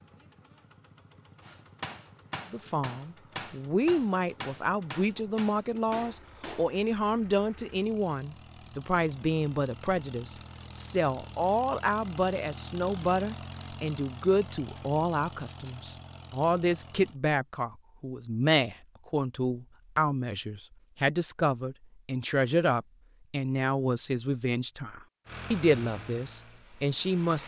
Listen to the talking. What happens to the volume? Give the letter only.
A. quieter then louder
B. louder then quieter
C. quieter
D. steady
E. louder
D.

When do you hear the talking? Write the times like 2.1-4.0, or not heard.
2.5-27.4.